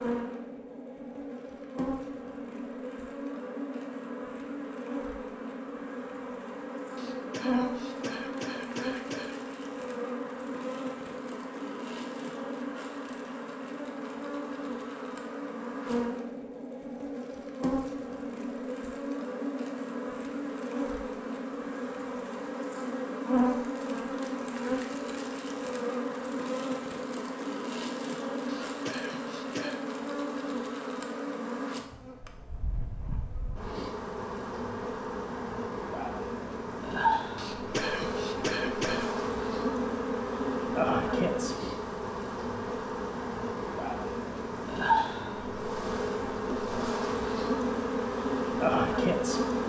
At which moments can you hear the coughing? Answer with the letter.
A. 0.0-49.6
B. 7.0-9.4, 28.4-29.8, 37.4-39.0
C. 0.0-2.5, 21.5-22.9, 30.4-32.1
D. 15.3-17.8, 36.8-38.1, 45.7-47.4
B.